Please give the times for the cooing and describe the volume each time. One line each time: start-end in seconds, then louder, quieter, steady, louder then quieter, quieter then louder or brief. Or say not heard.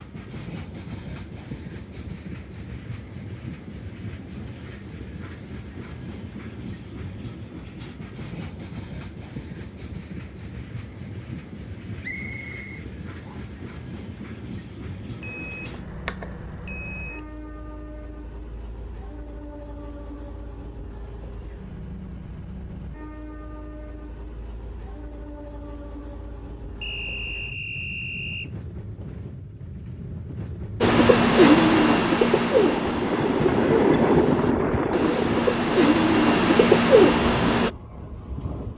30.8-37.7 quieter then louder.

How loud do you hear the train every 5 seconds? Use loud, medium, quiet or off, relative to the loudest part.
quiet, quiet, quiet, quiet, quiet, quiet, loud, medium.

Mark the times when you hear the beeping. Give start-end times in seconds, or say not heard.
15.2-17.2.